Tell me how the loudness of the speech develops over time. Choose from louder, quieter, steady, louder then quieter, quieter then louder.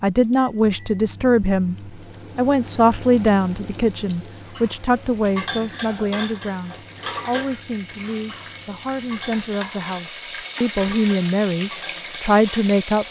quieter then louder.